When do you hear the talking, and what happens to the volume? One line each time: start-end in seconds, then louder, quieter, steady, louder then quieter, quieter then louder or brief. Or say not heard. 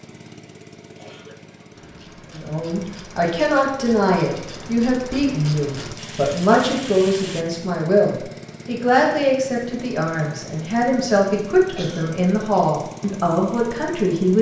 2.3-14.3 steady.